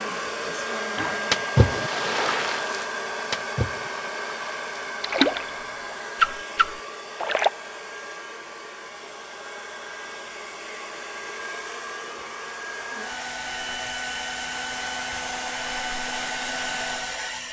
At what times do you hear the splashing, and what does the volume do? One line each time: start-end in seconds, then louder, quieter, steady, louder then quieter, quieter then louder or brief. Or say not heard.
0.9-5.5 quieter
6.2-7.5 brief.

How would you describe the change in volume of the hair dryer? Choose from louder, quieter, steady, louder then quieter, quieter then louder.
quieter then louder.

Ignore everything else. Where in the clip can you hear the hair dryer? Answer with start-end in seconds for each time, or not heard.
0.0-17.4.